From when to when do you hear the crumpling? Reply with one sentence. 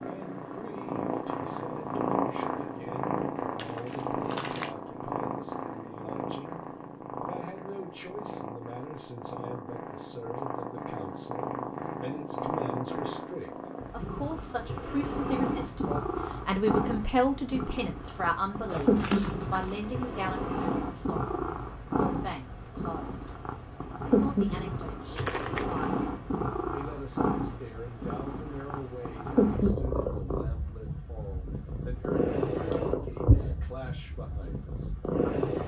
The crumpling can be heard from 3.5 to 4.8 s, from 18.6 to 19.9 s and from 25.1 to 25.9 s.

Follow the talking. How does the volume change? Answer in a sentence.
The loudness of the talking goes up, then down.